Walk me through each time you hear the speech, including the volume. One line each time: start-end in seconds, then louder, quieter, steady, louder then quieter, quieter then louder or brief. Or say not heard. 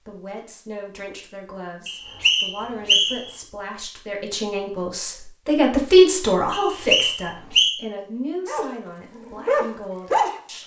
0.1-10.6 louder then quieter.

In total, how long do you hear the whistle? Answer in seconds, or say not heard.
3 s.